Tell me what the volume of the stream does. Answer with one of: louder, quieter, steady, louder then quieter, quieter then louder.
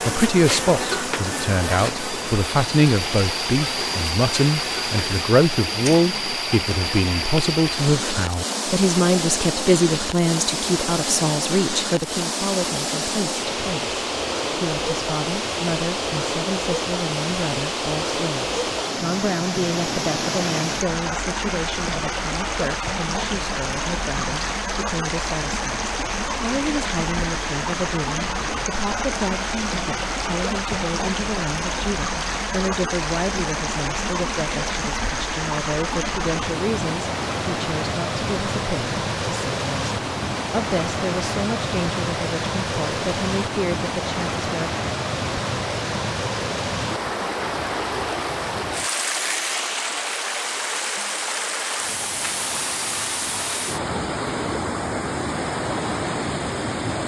steady.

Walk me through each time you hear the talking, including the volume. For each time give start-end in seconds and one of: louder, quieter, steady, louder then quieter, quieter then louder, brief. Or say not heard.
0.1-44.7 quieter.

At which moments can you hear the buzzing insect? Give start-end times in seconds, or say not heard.
0.0-5.2.